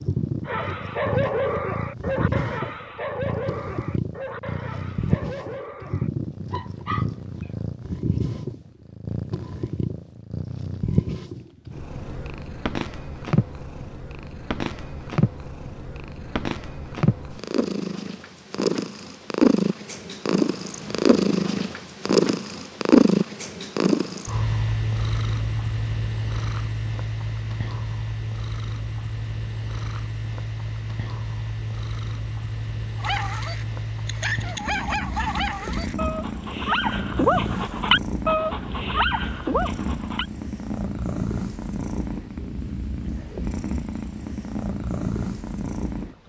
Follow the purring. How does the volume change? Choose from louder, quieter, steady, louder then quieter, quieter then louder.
louder then quieter.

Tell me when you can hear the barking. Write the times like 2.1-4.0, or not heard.
0.5-7.5, 33.0-40.2.